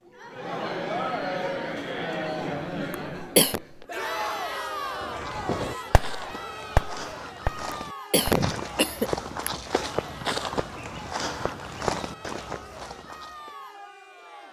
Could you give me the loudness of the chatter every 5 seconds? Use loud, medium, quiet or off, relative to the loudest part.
loud, medium, quiet.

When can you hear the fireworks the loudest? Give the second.
7 s.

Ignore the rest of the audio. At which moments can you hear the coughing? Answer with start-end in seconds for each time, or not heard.
2.9-3.6, 7.7-9.5.